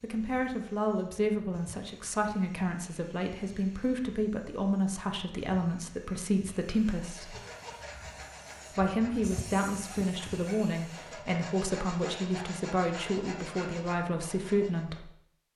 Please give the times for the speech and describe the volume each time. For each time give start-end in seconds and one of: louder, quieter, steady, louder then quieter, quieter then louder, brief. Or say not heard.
0.0-7.3 steady
8.7-15.1 steady.